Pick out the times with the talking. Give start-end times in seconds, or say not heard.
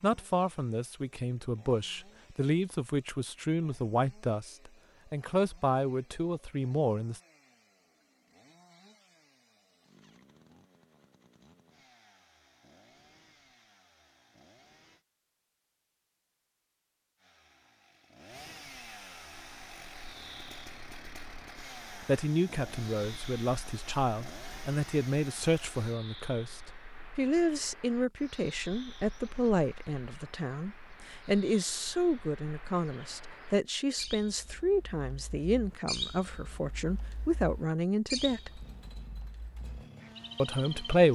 0.0-7.2, 22.0-38.6, 40.4-41.1.